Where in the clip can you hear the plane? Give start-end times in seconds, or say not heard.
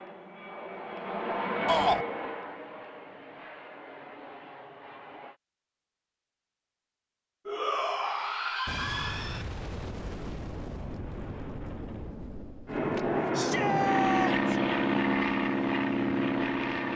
0.0-5.4, 12.7-16.9.